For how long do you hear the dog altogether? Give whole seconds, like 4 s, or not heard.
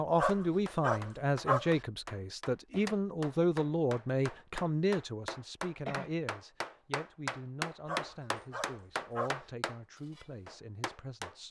3 s.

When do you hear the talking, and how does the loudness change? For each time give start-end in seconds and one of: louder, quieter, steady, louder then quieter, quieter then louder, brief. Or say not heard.
0.0-11.4 quieter.